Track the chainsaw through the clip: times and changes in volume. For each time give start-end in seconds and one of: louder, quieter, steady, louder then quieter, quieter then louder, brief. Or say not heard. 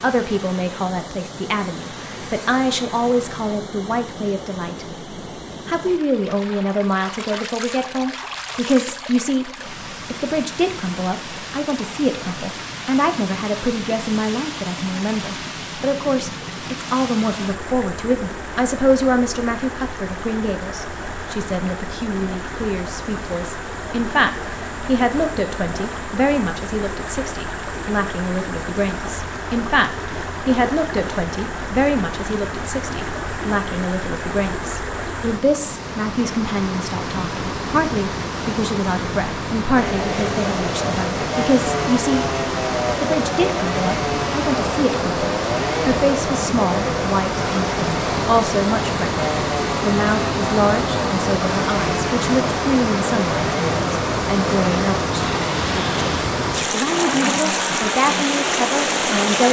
39.8-59.4 steady.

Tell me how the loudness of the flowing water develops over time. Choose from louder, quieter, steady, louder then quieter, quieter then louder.
louder.